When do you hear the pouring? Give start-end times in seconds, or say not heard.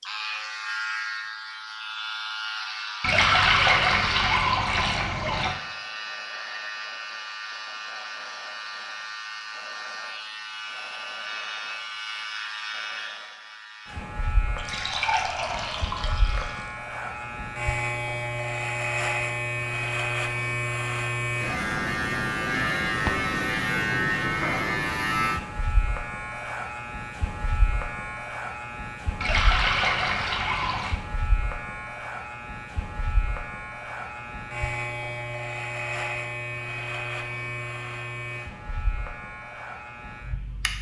3.0-5.5, 14.6-16.7, 29.2-30.9.